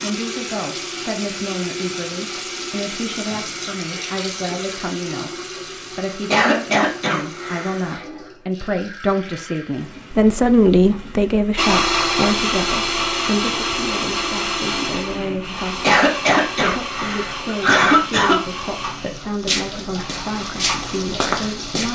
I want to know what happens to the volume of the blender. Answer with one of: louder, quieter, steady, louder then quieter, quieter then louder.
quieter.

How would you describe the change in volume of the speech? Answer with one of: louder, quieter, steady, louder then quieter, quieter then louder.
louder then quieter.